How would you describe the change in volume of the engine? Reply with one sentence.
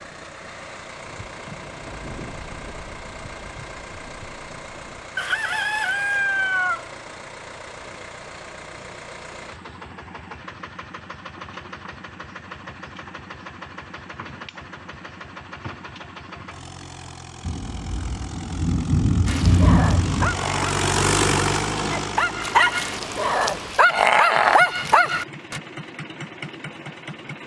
The loudness of the engine goes up, then down.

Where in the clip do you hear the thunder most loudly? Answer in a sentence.
The volume of the thunder peaks at 20 seconds.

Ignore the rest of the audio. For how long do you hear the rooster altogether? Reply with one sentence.
The rooster can be heard for 2 seconds in total.